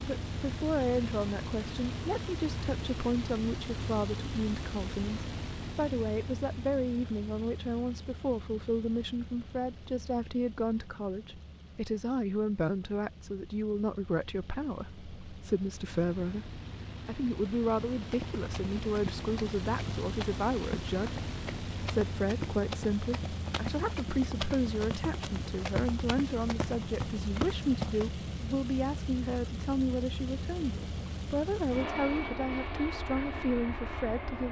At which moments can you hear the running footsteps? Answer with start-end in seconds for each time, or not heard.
17.9-28.1.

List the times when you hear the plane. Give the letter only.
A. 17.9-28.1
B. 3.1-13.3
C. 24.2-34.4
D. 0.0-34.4
D.